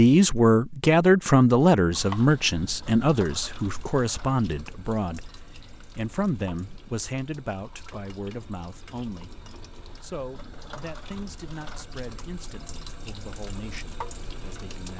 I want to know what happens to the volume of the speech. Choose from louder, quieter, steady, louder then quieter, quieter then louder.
quieter.